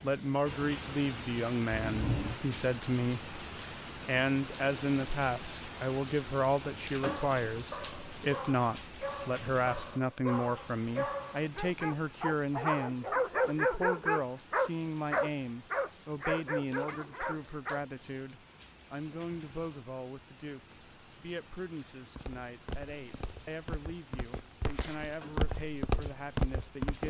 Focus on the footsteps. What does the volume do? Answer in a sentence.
The loudness of the footsteps goes up.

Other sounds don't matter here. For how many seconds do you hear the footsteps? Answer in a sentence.
The footsteps can be heard for 5 seconds in total.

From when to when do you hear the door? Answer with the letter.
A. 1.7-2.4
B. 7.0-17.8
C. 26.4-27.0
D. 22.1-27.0
A.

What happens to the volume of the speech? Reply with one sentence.
The loudness of the speech goes down.